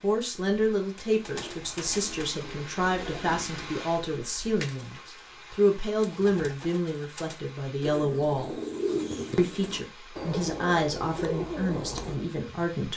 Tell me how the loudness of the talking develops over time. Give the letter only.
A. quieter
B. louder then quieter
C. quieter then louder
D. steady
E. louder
D.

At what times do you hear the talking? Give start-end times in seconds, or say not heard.
0.0-8.5, 9.3-12.9.